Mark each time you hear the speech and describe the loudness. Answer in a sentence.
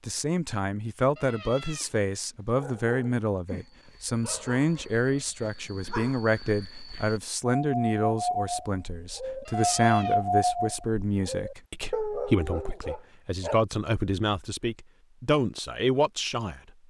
The speech can be heard from 0.1 to 16.6 s, at a steady volume.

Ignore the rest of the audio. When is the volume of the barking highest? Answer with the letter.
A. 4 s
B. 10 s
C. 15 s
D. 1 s
B.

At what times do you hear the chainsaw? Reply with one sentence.
The chainsaw can't be heard in this clip.